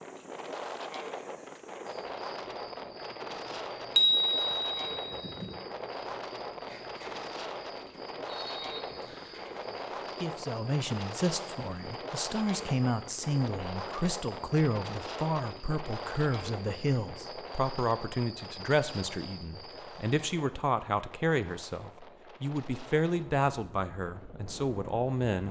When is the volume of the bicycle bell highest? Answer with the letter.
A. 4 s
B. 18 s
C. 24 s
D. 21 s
A.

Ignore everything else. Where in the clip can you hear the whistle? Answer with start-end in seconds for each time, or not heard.
8.2-9.4.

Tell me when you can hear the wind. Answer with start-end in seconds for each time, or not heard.
0.0-25.4.